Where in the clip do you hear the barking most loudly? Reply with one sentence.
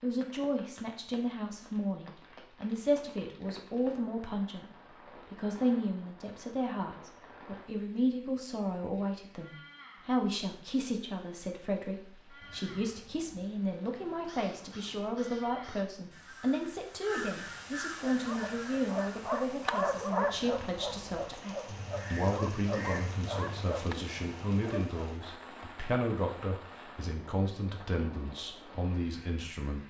The volume of the barking peaks at 20 seconds.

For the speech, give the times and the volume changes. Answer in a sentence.
You can hear the speech from 0.0 to 29.8 s, at a steady volume.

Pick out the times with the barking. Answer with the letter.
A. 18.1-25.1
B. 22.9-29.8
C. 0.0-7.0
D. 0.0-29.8
A.